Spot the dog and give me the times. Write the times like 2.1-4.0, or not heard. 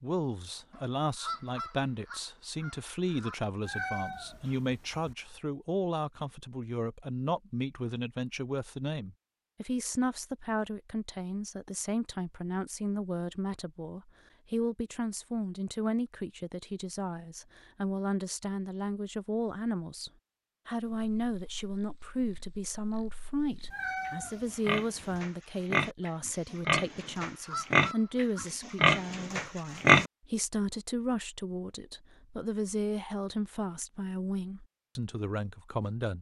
not heard.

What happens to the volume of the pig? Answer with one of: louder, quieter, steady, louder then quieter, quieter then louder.
louder.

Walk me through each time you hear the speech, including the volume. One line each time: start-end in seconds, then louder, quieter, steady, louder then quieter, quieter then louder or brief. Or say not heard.
0.0-36.1 steady.